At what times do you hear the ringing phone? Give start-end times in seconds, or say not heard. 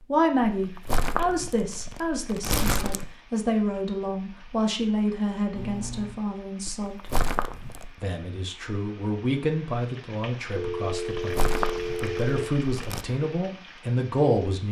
2.6-3.0, 5.5-6.2, 10.6-12.5.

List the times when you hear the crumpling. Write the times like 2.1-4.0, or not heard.
0.4-3.1, 6.7-7.9, 11.2-13.1.